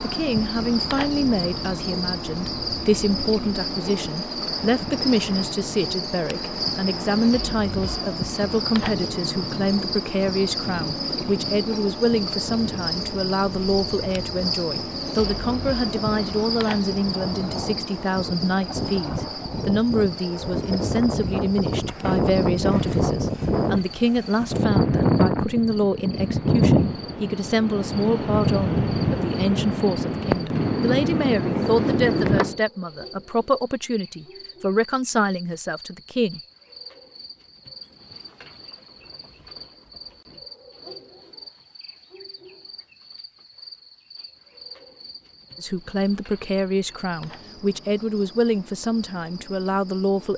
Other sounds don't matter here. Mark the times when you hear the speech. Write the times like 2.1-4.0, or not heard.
0.0-36.4, 45.6-50.3.